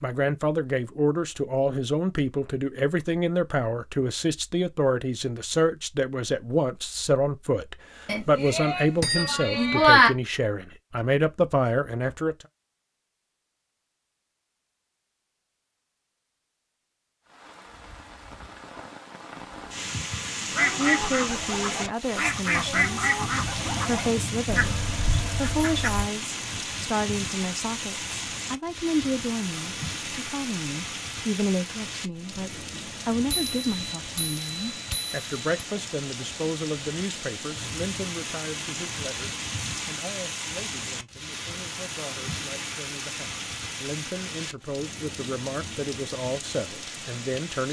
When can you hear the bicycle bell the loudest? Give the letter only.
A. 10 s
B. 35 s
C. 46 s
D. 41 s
A.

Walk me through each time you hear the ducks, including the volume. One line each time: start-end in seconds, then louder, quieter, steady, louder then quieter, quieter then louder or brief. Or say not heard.
20.6-26.1 louder then quieter.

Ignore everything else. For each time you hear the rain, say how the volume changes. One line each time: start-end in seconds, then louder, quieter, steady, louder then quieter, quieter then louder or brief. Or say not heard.
17.3-47.6 steady.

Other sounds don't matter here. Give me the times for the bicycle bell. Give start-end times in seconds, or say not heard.
8.1-10.1, 33.3-35.6.